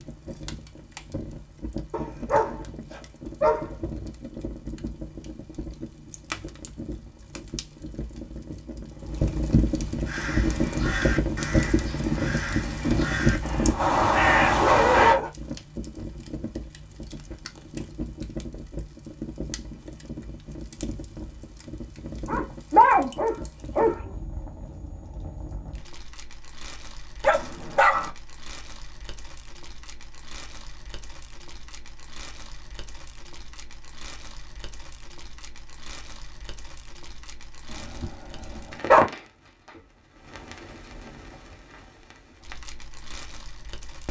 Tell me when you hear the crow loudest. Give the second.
14 s.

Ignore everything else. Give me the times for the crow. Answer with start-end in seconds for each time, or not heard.
10.1-15.2.